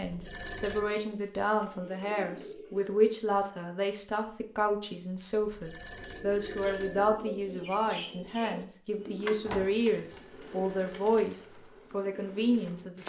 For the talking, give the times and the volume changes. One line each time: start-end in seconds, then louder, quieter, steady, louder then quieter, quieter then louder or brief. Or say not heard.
0.0-13.0 steady.